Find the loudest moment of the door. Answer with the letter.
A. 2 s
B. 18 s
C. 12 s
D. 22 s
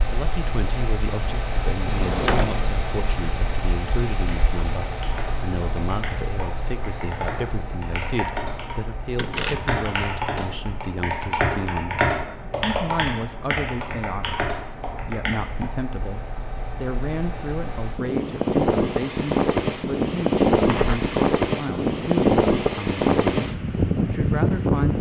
A.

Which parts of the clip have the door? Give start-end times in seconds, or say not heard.
1.8-2.8, 9.2-9.8, 20.6-21.1.